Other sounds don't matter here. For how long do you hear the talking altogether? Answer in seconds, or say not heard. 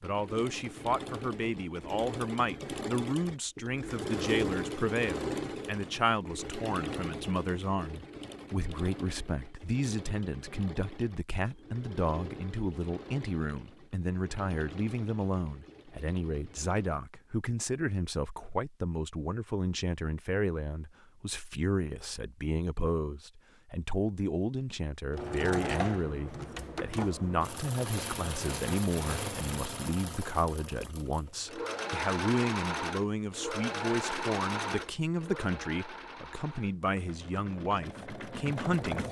39 s.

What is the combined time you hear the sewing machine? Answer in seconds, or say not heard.
31 s.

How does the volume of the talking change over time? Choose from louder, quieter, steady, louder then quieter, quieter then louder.
steady.